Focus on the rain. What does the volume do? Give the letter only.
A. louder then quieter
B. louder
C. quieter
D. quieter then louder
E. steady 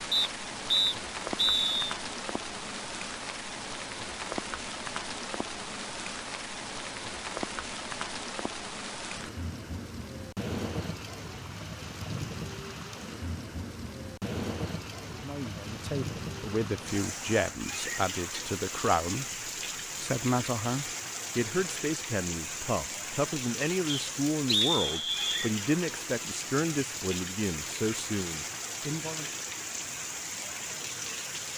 E.